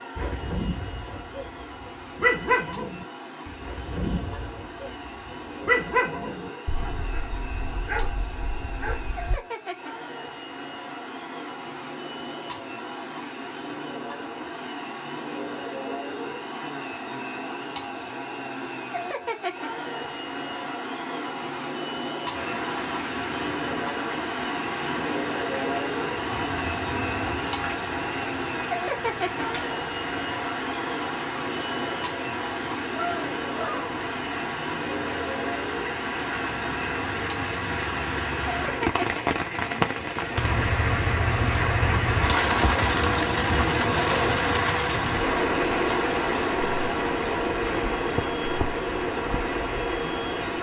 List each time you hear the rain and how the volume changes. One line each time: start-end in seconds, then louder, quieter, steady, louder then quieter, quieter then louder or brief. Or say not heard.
22.3-50.5 louder.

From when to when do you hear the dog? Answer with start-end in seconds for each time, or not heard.
0.1-9.4.